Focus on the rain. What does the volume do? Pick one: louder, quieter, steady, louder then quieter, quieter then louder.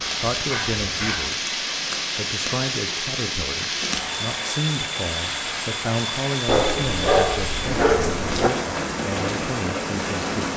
steady.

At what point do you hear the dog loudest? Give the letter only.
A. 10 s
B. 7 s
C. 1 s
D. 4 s
B.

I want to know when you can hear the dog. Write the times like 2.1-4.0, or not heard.
0.5-1.3, 6.5-8.5.